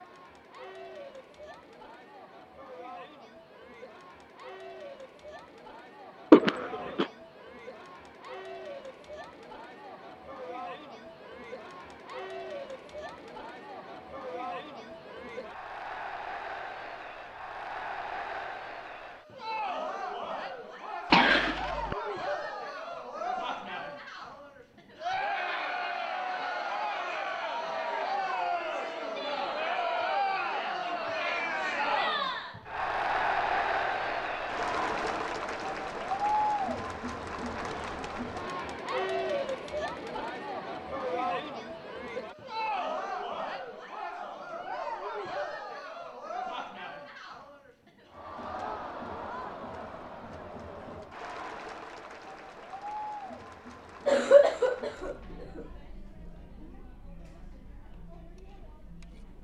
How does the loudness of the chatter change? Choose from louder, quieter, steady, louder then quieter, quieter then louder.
louder then quieter.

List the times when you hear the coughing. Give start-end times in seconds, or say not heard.
6.3-7.0, 21.1-21.9, 54.0-55.6.